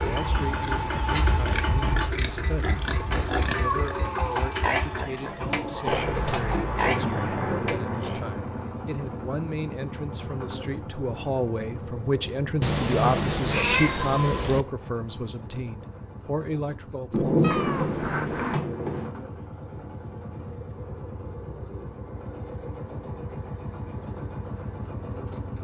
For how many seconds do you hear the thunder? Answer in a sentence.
You can hear the thunder for 5 seconds altogether.